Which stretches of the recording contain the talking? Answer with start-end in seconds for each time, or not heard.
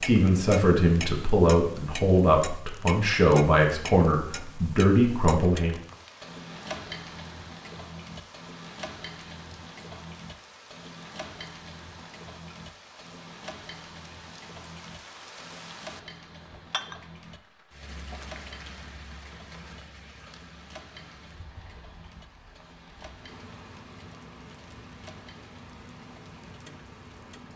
0.0-5.8.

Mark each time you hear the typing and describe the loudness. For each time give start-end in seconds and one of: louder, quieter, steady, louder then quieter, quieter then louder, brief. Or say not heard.
not heard.